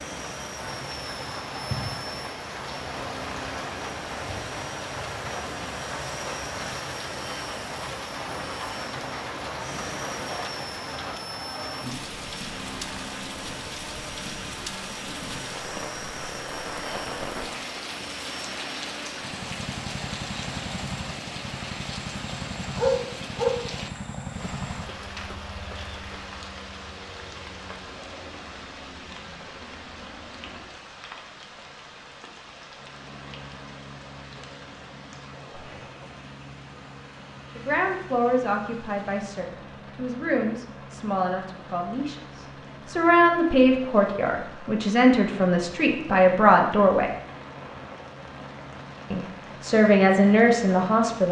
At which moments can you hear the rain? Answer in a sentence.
You can hear the rain from 0.0 to 51.2 s.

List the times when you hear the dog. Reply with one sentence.
You can hear the dog from 22.8 to 24.0 s.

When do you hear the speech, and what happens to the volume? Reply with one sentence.
You can hear the speech from 37.5 to 47.1 s, getting louder; and briefly from 49.1 to 51.2 s.